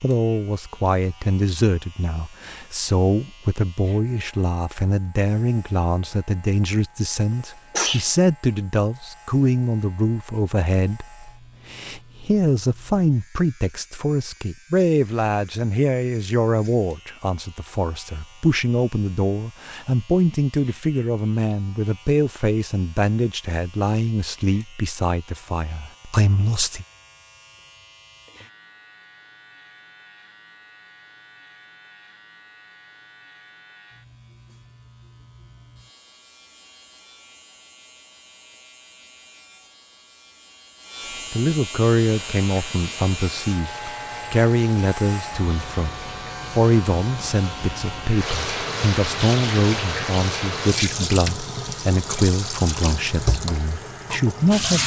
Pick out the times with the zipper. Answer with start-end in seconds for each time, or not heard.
not heard.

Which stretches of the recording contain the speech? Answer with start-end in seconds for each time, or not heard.
0.0-26.9, 41.3-54.8.